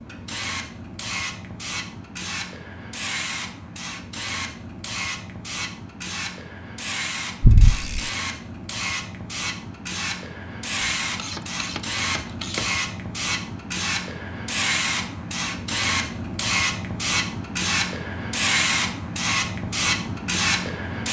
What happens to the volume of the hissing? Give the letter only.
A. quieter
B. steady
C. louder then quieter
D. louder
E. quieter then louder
D.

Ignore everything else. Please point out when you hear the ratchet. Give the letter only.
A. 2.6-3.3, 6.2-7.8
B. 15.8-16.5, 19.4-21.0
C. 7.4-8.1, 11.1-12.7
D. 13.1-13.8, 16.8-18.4
C.